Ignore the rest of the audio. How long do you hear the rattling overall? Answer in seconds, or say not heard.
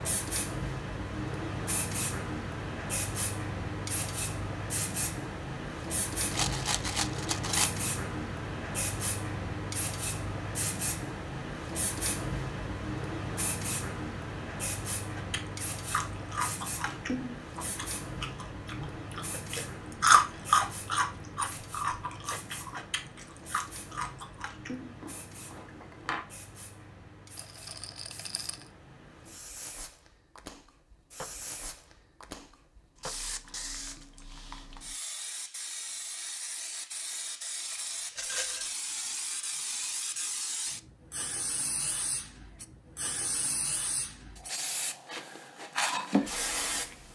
3 s.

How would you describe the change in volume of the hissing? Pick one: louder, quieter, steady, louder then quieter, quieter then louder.
quieter then louder.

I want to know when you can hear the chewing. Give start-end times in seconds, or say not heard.
15.2-26.2.